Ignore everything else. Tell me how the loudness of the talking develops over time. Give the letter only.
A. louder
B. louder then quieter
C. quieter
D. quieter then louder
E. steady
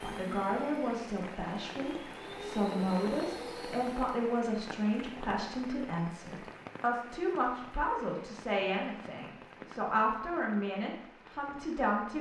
E.